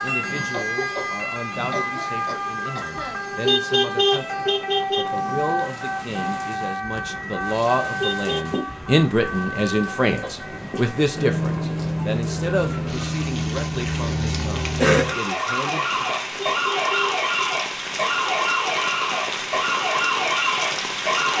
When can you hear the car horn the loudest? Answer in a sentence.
The volume of the car horn peaks at 4 seconds.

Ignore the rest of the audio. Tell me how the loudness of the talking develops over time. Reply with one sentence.
The volume of the talking goes up, then down.